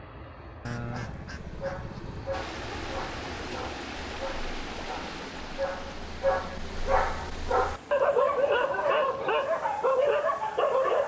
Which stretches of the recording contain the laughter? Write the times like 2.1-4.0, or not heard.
not heard.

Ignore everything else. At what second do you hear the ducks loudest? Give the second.
1 s.